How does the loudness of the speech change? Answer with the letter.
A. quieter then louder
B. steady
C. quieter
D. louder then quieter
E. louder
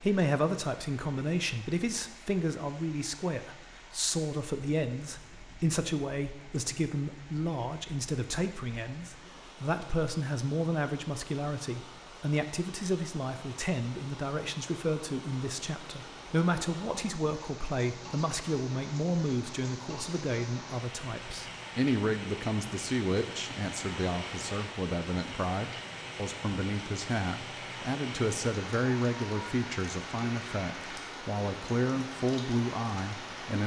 B.